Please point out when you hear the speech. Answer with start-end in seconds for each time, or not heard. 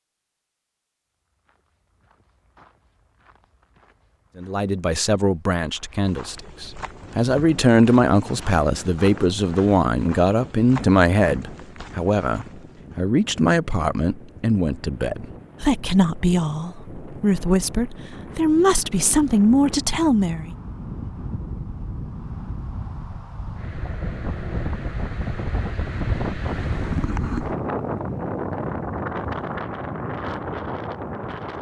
4.3-20.5.